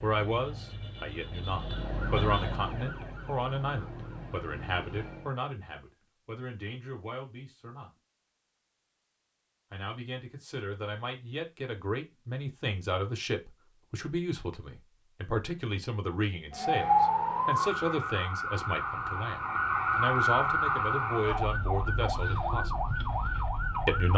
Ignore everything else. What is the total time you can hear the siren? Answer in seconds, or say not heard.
13 s.